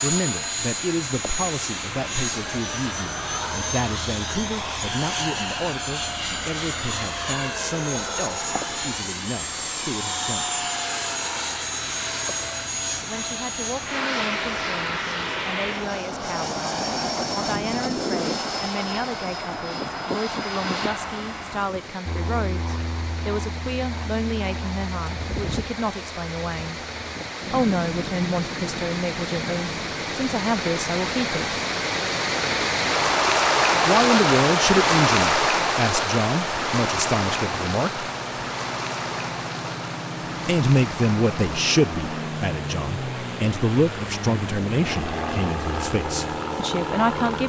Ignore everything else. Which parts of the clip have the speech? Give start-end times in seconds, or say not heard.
0.0-10.6, 13.0-26.9, 27.5-31.6, 33.9-38.0, 40.5-47.4.